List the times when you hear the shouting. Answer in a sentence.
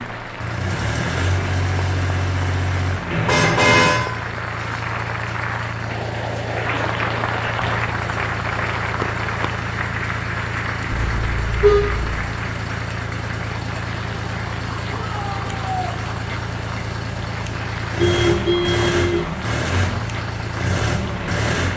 The shouting can be heard from 14.9 to 16.0 s.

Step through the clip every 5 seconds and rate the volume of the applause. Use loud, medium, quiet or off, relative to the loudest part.
medium, loud, medium, medium, medium.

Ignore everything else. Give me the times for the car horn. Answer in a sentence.
You can hear the car horn from 3.1 to 4.0 s, from 11.2 to 12.1 s and from 17.9 to 19.3 s.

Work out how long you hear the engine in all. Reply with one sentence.
The engine can be heard for 22 seconds in total.